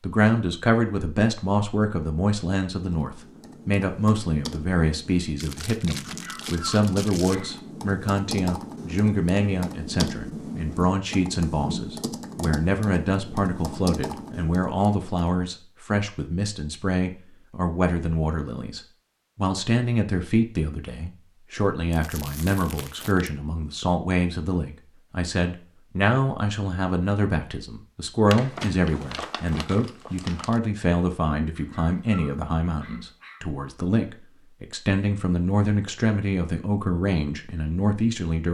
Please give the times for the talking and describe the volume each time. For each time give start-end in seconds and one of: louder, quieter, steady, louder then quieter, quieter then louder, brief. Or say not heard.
0.0-38.4 steady.